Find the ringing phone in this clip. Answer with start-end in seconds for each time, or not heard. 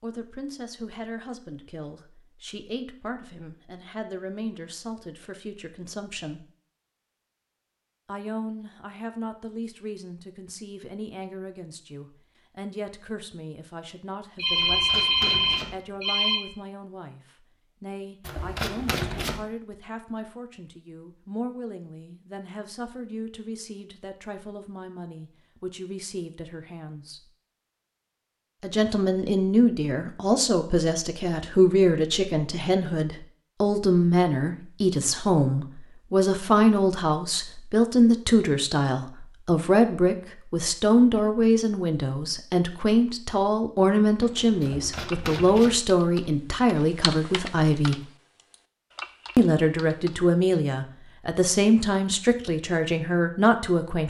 14.3-16.4.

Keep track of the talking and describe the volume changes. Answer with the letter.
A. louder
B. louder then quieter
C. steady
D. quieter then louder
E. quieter
A.